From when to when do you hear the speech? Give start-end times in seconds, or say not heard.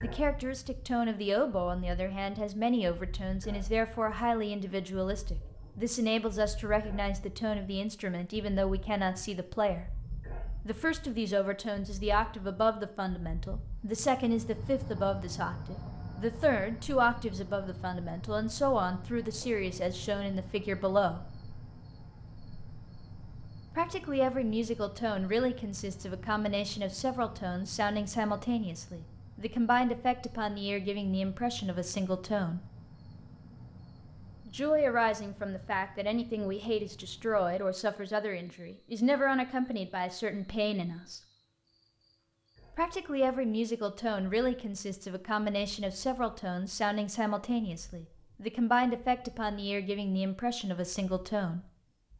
0.0-9.8, 10.7-21.3, 23.7-32.6, 34.5-41.2, 42.8-51.6.